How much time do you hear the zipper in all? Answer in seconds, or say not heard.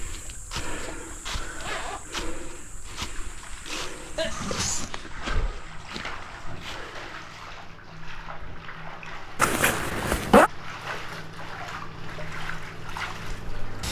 2 s.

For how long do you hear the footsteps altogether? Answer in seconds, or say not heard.
7 s.